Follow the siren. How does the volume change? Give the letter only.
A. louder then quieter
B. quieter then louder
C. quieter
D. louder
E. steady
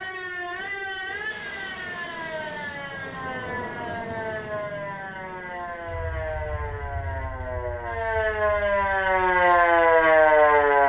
D.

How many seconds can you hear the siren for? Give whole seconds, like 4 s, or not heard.
11 s.